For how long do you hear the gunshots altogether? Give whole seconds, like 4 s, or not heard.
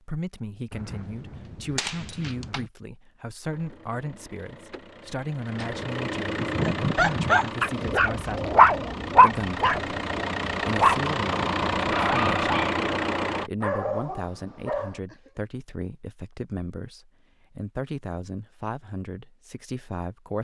2 s.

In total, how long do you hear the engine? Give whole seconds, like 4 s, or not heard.
10 s.